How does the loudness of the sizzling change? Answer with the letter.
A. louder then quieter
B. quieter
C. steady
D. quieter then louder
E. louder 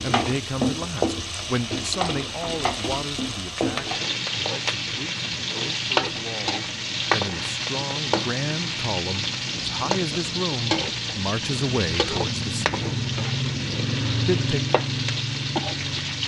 C.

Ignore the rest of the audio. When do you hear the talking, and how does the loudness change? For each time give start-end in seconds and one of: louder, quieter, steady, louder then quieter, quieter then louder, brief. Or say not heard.
0.0-12.9 quieter then louder
14.2-14.6 brief.